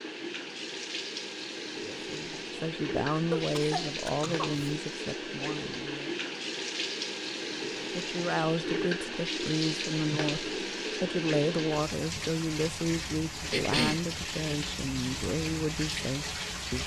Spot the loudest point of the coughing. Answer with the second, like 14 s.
14 s.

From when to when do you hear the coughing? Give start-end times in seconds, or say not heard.
3.4-4.7, 13.5-14.1.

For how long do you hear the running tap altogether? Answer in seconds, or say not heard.
17 s.